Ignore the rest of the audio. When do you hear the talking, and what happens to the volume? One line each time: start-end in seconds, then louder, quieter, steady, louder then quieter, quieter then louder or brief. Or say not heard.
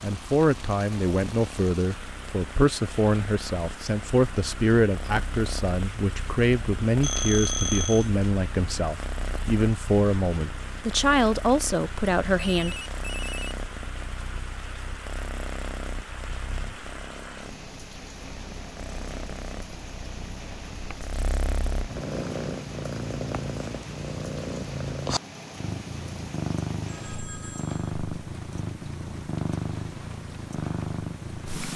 0.0-12.8 steady.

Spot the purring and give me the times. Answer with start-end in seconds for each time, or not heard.
0.0-31.7.